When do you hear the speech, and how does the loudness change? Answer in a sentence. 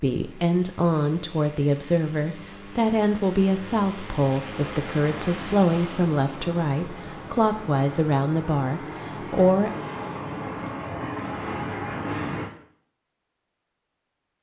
You can hear the speech from 0.0 to 9.7 s, at a steady volume.